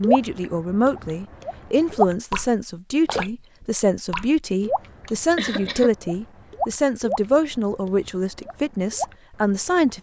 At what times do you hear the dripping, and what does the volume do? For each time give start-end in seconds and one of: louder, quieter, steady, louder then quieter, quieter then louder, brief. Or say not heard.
0.0-9.9 quieter.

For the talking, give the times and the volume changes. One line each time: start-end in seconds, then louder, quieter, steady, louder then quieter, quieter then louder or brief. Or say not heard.
0.0-9.9 steady.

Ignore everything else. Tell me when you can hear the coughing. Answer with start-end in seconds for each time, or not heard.
5.0-5.9.